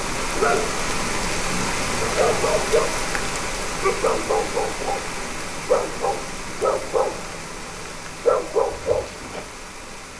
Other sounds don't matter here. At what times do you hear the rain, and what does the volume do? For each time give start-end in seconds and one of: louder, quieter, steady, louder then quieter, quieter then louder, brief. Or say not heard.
0.0-10.1 quieter.